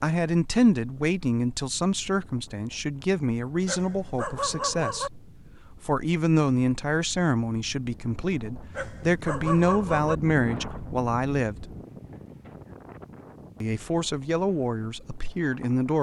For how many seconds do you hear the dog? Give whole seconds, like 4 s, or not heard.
3 s.